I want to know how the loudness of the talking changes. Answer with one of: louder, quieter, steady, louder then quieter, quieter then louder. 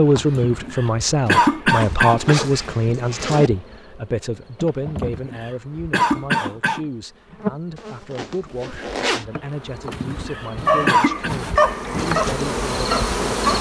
quieter.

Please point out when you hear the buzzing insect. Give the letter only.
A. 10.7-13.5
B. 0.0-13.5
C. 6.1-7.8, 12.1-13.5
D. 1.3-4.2
B.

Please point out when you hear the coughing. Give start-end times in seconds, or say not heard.
0.3-2.4, 5.0-6.8, 9.9-11.3.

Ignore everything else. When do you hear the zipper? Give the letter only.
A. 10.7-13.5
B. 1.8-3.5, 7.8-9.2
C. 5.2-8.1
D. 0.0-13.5
B.